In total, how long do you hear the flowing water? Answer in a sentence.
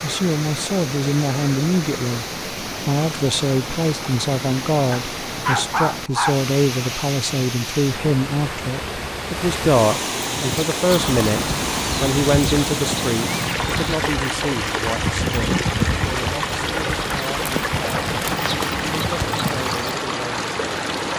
You can hear the flowing water for 21 seconds altogether.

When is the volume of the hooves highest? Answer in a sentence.
The volume of the hooves peaks at 16 seconds.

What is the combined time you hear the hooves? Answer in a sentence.
You can hear the hooves for 10 seconds altogether.